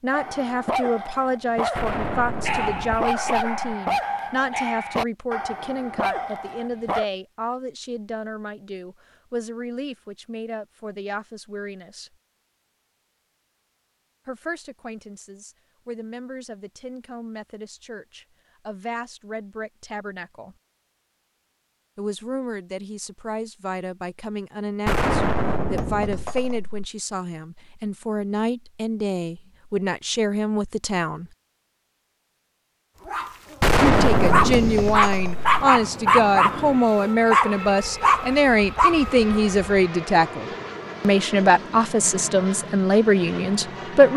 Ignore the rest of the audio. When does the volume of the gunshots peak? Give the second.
34 s.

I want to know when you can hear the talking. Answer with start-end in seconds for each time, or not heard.
0.0-12.1, 14.2-20.6, 21.9-31.3, 33.8-44.1.